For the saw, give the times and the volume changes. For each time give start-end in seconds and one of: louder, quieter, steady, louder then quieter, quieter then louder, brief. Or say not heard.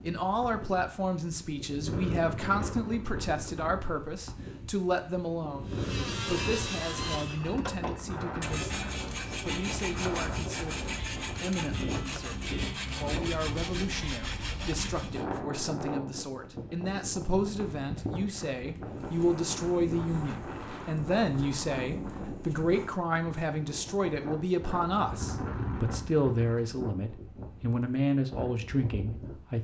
5.7-15.2 steady.